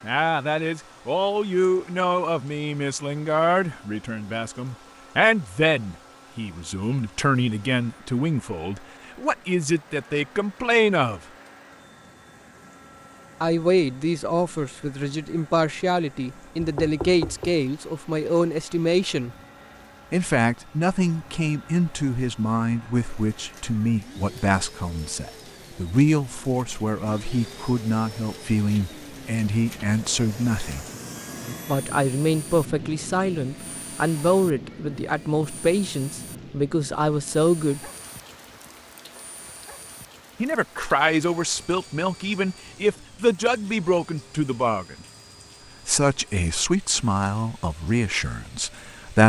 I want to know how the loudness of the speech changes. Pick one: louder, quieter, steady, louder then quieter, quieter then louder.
steady.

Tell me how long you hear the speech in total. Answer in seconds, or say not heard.
42 s.